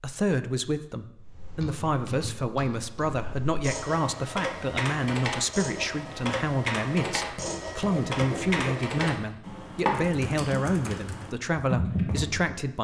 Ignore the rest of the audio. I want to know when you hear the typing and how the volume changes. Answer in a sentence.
You can hear the typing from 1.1 to 12.6 s, getting louder.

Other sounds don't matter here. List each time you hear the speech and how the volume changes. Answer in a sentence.
The speech can be heard from 0.0 to 12.7 s, at a steady volume.